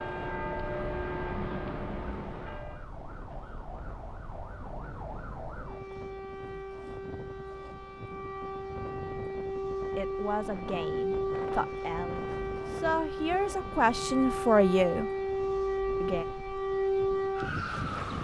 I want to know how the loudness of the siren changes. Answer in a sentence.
The volume of the siren goes up.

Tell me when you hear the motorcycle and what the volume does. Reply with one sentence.
You can't hear the motorcycle here.